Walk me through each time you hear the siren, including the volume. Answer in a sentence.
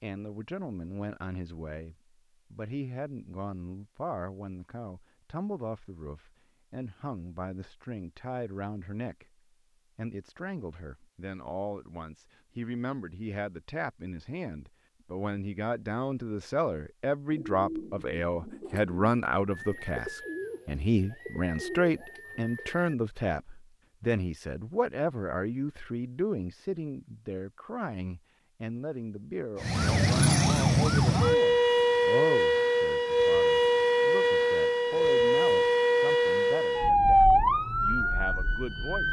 The siren can be heard from 29.6 to 39.0 s, at a steady volume.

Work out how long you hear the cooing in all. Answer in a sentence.
You can hear the cooing for 6 seconds altogether.